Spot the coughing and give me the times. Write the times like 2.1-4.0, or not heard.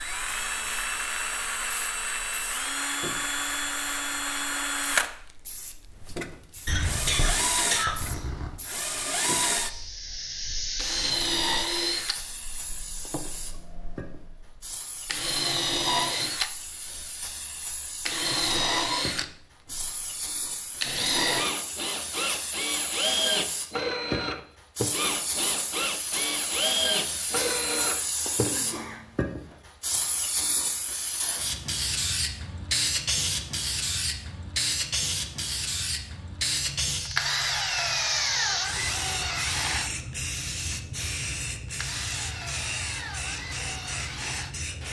6.7-8.6, 27.6-29.6.